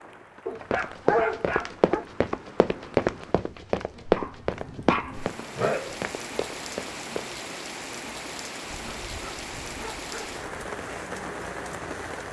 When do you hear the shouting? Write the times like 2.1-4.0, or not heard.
not heard.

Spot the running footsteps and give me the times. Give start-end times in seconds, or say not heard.
0.7-7.3.